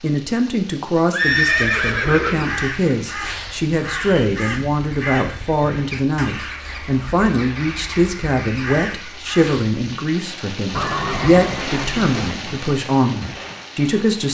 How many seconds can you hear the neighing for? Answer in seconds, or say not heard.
3 s.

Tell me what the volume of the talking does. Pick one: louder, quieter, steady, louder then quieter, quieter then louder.
steady.